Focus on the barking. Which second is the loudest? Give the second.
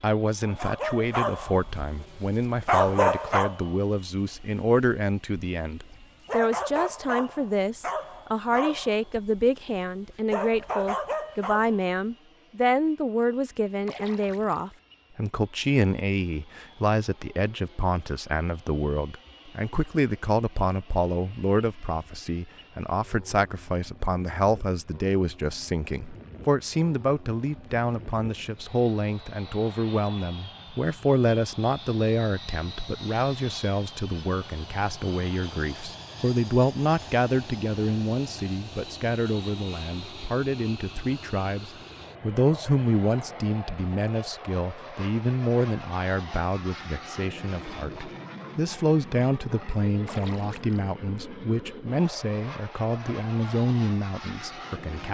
3 s.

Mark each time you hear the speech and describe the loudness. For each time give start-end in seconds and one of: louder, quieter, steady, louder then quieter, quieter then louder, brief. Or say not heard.
0.0-55.0 steady.